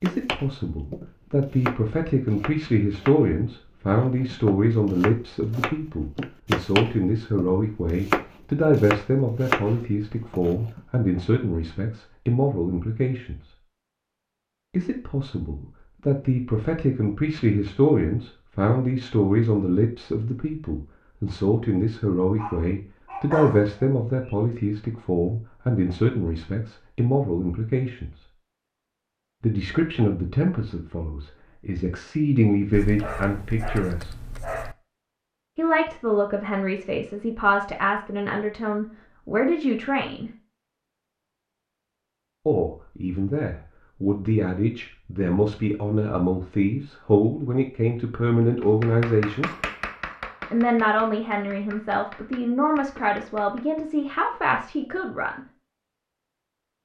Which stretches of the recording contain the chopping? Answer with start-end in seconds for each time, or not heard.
0.1-11.0, 48.6-53.9.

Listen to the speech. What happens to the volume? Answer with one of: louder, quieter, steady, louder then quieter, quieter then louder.
steady.